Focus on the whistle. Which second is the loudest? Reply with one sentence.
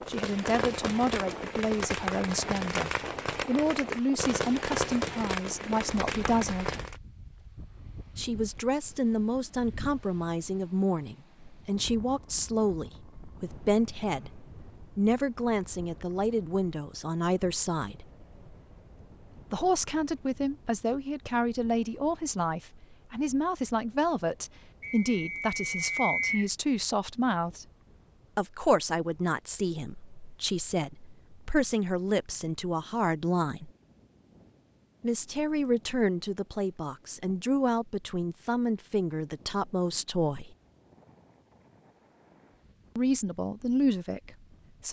The volume of the whistle peaks at 26 seconds.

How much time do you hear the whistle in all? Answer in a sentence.
The whistle can be heard for 2 seconds in total.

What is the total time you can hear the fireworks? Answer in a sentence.
The fireworks can be heard for 7 seconds in total.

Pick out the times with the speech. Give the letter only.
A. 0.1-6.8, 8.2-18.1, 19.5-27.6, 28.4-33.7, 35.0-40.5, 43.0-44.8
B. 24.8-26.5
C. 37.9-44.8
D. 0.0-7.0
A.